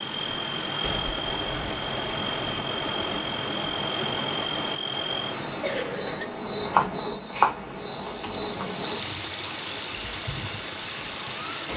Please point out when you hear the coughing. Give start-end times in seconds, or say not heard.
5.6-6.3.